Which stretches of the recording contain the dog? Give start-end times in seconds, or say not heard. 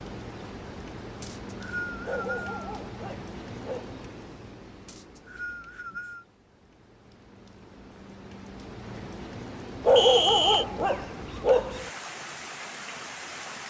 2.0-4.0, 9.8-11.9.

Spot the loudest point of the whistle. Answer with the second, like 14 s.
10 s.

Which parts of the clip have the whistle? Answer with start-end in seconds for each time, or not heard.
1.2-2.5, 4.8-6.2, 9.9-10.7.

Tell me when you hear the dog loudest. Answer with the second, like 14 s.
10 s.